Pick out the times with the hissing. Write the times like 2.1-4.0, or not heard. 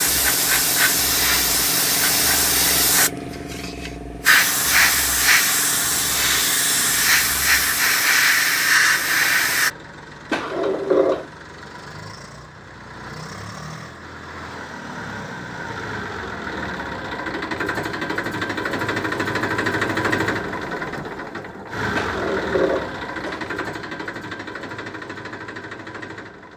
0.0-9.7.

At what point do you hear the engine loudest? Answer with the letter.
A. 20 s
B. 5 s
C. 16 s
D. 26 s
A.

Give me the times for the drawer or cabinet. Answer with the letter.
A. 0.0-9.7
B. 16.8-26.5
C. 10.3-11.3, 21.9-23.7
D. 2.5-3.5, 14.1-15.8
C.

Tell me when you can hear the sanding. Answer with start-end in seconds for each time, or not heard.
not heard.